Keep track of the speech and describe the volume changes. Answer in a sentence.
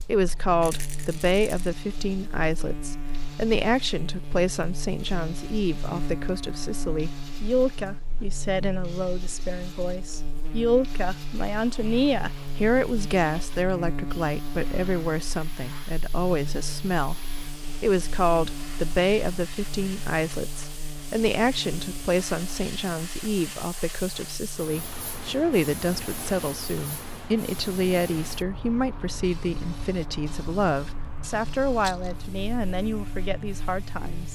The loudness of the speech stays about the same.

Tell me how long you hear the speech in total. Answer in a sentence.
The speech can be heard for 34 seconds in total.